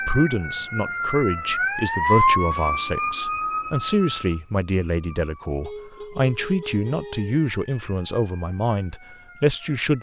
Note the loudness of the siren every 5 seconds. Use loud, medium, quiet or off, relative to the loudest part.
loud, quiet.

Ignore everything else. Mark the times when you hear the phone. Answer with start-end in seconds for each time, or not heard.
not heard.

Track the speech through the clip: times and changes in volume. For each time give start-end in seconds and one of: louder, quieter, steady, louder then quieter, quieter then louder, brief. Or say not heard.
0.0-9.9 steady.